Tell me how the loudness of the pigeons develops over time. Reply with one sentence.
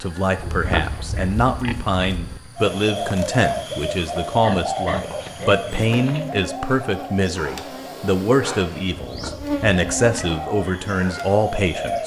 The loudness of the pigeons goes down, then up.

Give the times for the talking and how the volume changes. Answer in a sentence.
The talking can be heard from 0.0 to 12.0 s, at a steady volume.